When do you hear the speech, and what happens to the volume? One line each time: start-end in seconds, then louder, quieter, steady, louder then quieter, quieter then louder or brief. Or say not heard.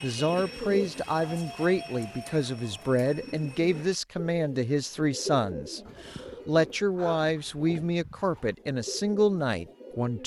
0.0-10.2 steady.